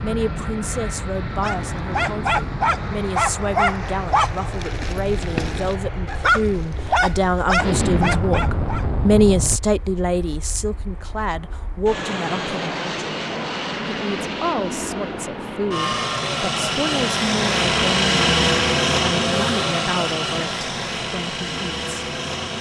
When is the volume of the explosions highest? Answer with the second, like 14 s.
8 s.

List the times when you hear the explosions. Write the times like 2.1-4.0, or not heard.
7.5-9.6.